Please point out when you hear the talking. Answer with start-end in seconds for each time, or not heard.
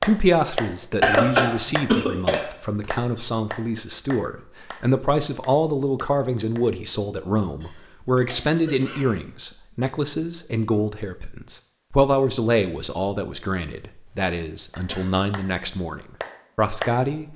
0.0-17.3.